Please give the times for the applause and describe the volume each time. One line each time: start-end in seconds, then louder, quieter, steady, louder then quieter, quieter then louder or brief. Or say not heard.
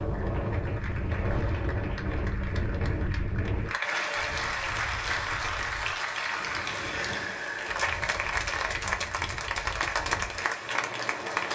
0.0-11.4 louder.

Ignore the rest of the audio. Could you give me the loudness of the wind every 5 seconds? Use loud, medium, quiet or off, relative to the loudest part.
loud, medium, medium.